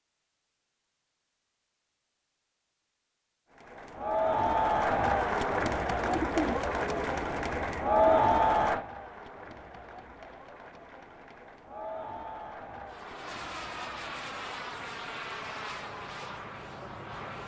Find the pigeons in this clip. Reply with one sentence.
The pigeons can be heard from 6.0 to 8.3 s.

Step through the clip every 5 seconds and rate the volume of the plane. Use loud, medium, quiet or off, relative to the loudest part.
off, off, loud, loud.